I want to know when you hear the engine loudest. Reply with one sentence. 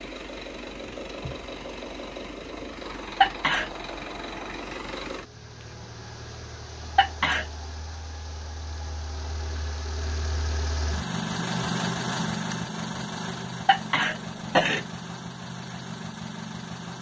The volume of the engine peaks at 12 seconds.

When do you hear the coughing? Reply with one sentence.
You can hear the coughing from 3.2 to 3.7 s, from 7.0 to 7.5 s and from 13.7 to 14.8 s.